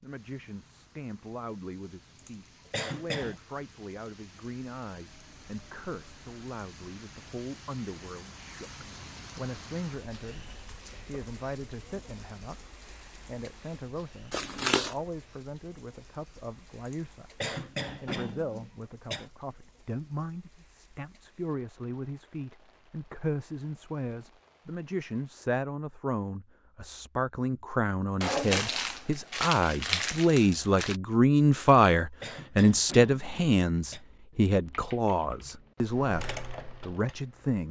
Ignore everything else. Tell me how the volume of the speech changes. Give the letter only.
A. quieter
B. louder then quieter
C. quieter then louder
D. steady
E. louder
E.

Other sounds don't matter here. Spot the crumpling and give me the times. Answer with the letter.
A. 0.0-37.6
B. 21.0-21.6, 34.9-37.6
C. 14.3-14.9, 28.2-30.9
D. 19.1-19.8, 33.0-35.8
C.